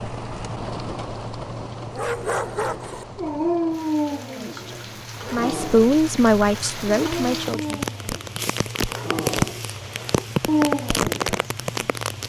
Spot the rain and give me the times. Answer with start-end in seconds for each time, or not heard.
0.0-12.2.